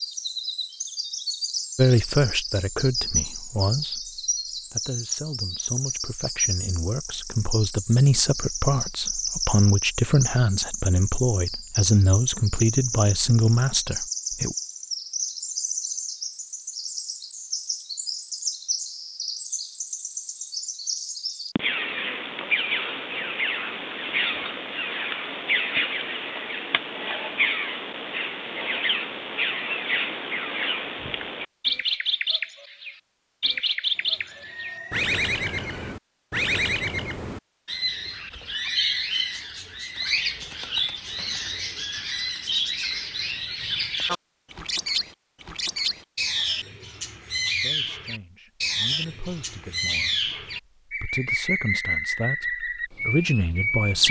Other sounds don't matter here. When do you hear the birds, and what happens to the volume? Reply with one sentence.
The birds can be heard from 0.0 to 54.0 s, at a steady volume.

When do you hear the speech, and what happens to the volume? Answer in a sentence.
The speech can be heard from 1.8 to 14.6 s, getting quieter then louder; and from 47.5 to 54.0 s, getting louder.